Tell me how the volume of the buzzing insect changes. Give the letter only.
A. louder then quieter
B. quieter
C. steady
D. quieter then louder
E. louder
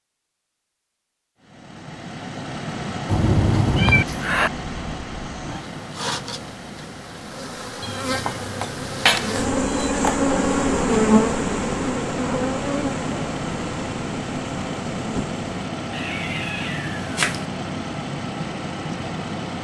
A.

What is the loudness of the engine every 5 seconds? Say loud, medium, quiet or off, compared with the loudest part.
loud, medium, loud, loud.